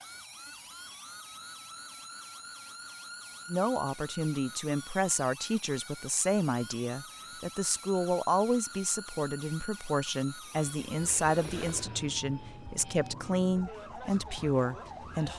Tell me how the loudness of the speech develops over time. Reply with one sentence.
The loudness of the speech stays about the same.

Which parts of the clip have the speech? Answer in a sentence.
You can hear the speech from 3.5 to 15.3 s.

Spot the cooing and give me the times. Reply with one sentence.
You can't hear the cooing here.